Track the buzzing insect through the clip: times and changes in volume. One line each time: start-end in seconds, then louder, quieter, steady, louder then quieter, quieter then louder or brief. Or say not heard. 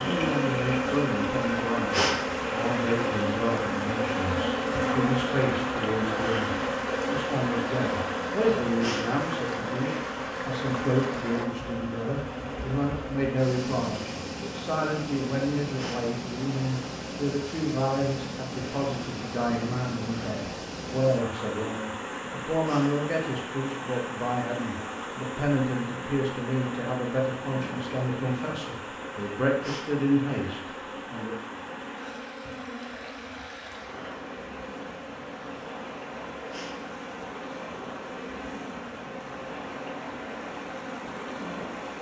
0.0-41.9 quieter.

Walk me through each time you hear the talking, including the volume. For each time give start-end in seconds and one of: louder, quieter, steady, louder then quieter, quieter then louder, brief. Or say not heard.
0.0-31.4 steady.